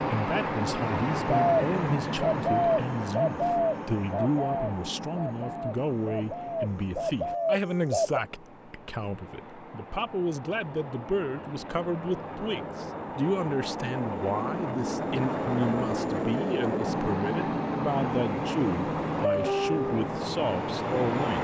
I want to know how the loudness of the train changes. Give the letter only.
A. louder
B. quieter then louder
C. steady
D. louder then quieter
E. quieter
B.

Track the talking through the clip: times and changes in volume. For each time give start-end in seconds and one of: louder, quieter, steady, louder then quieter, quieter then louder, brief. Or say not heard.
0.0-21.3 steady.